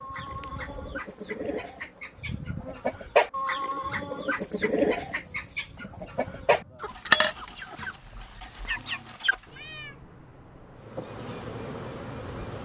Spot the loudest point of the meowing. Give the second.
10 s.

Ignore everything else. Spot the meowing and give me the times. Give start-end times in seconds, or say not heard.
0.3-1.0, 9.4-10.8.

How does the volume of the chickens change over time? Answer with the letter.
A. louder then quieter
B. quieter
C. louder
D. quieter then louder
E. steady
A.